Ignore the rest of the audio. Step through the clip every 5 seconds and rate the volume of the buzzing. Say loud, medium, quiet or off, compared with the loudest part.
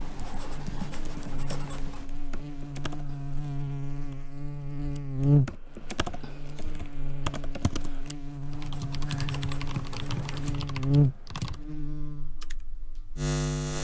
medium, loud, loud.